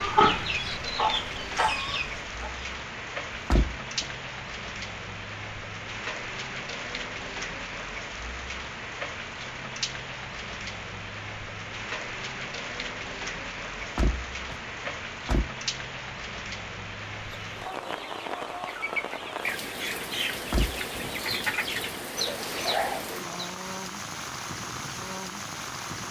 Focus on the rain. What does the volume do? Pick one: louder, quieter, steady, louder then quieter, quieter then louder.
steady.